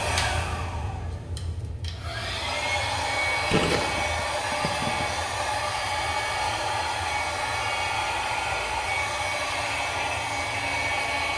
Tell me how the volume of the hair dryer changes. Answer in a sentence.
The volume of the hair dryer goes up.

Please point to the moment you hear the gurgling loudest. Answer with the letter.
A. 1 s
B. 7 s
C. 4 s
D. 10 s
C.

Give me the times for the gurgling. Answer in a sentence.
You can hear the gurgling from 3.5 to 5.0 s.